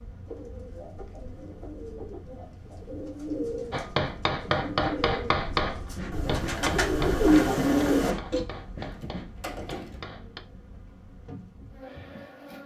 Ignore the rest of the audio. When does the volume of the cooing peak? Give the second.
7 s.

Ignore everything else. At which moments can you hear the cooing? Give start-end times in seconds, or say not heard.
0.2-8.4.